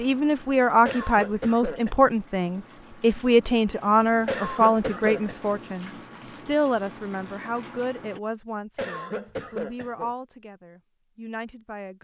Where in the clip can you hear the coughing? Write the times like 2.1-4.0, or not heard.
0.8-1.9, 4.2-5.3, 8.8-10.1.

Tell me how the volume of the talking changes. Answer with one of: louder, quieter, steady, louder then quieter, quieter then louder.
quieter.